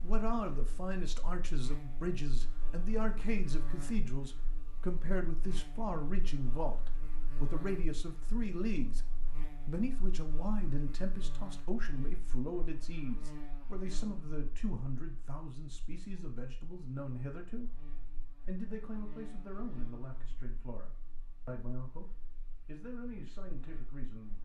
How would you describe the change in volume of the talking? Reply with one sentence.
The loudness of the talking goes down.